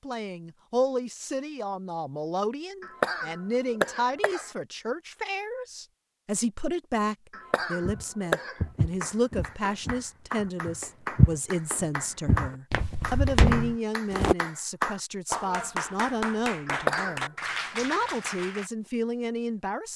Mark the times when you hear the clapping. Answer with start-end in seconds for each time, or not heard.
9.0-18.7.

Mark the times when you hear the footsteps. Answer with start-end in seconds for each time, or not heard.
7.8-14.3.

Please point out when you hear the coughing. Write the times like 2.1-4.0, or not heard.
2.8-4.5, 7.3-8.6, 16.6-17.2.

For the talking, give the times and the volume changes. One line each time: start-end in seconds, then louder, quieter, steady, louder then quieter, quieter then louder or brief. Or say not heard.
0.0-19.9 steady.